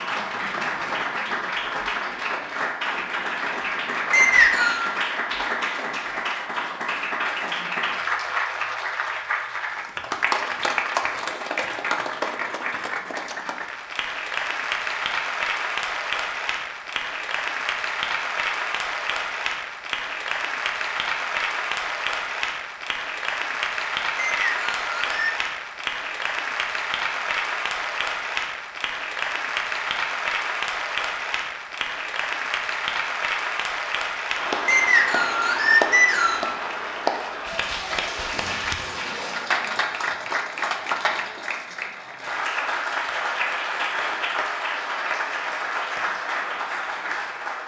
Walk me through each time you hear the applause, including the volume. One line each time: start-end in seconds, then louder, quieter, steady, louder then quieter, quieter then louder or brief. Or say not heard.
0.0-47.6 steady.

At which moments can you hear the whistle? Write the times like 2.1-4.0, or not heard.
4.1-4.8, 24.1-25.4, 34.6-36.5.